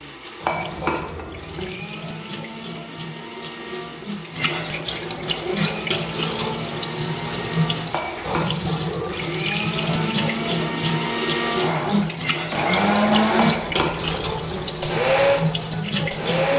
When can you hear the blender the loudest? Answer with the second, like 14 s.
13 s.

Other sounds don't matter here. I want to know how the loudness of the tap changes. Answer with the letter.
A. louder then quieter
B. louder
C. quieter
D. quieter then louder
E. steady
B.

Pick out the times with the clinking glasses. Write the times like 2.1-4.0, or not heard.
0.4-1.7, 7.9-9.2, 13.3-14.6.